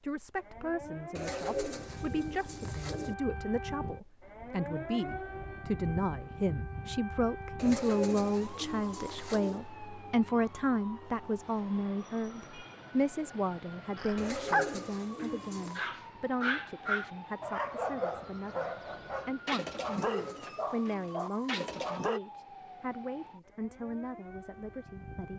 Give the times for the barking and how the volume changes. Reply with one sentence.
The barking can be heard from 13.9 to 22.2 s, getting quieter.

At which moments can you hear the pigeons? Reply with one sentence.
The pigeons can be heard from 1.1 to 3.1 s, from 7.5 to 9.6 s, from 14.2 to 15.8 s and from 19.9 to 21.6 s.